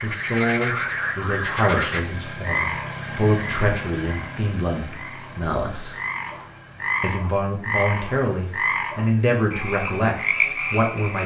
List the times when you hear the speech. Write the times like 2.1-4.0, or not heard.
0.0-6.0, 7.0-11.2.